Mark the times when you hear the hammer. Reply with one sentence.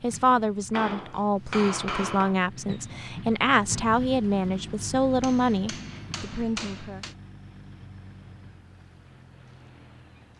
You can hear the hammer from 0.7 to 2.4 s and from 5.2 to 7.2 s.